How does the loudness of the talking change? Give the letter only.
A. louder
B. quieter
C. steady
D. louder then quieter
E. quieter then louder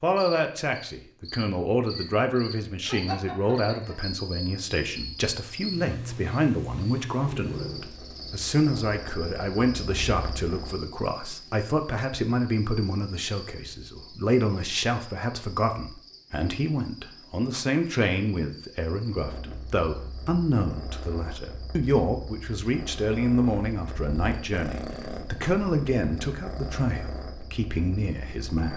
C.